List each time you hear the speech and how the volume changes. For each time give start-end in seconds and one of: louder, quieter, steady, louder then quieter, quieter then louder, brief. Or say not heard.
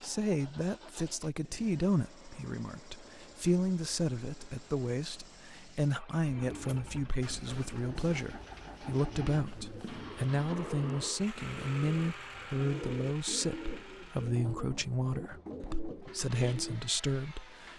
0.0-17.7 steady.